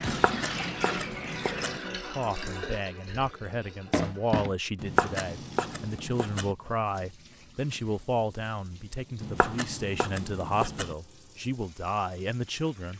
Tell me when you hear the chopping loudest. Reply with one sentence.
The volume of the chopping peaks at 5 seconds.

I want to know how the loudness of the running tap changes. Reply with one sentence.
The volume of the running tap goes down.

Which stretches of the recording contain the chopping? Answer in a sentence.
You can hear the chopping from 0.1 to 1.8 s, from 4.8 to 6.5 s and from 9.2 to 10.9 s.